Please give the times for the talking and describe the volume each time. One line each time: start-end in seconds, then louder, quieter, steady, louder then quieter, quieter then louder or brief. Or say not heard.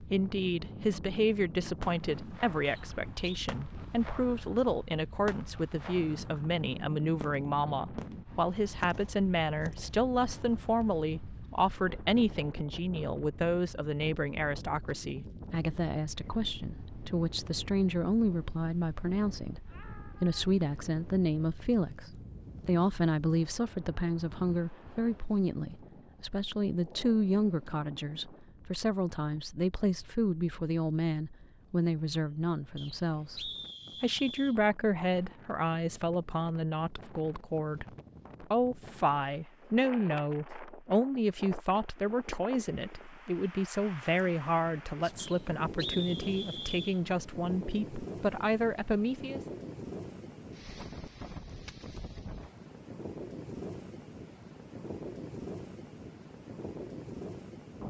0.0-49.4 steady.